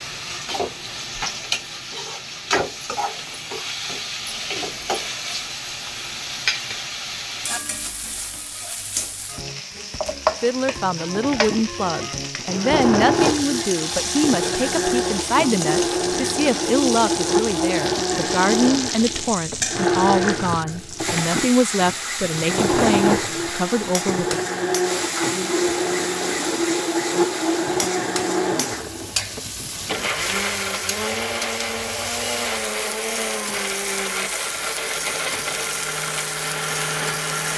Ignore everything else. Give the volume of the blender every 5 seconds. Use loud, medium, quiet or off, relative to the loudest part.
off, off, loud, loud, loud, loud, loud, loud.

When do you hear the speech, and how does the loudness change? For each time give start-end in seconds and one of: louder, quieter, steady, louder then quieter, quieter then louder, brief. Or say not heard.
10.4-24.4 steady.